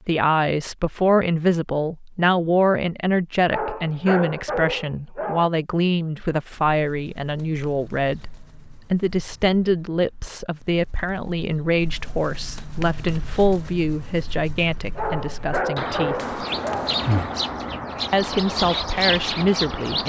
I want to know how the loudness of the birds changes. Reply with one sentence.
The volume of the birds goes up.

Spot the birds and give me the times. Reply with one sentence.
The birds can be heard from 6.5 to 20.0 s.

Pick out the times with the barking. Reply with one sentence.
You can hear the barking from 3.5 to 5.5 s and from 14.9 to 16.9 s.